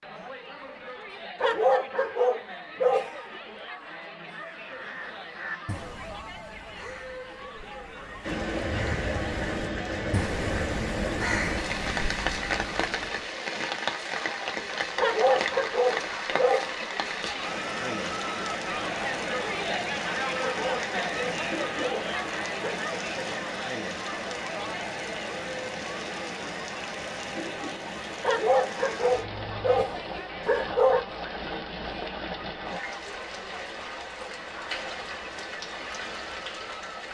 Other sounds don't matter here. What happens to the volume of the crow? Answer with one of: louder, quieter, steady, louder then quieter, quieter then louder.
quieter then louder.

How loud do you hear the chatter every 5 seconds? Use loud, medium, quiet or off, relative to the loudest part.
medium, medium, medium, loud, loud, medium, medium, medium.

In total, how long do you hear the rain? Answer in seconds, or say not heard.
29 s.